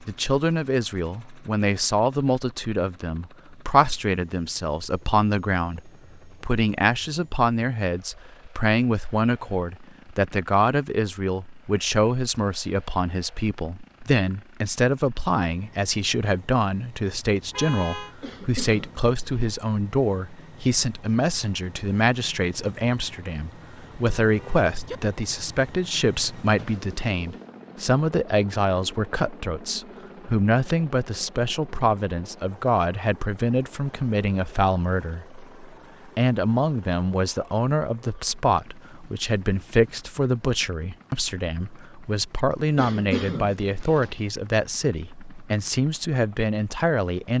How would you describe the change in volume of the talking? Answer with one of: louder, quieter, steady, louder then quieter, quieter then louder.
steady.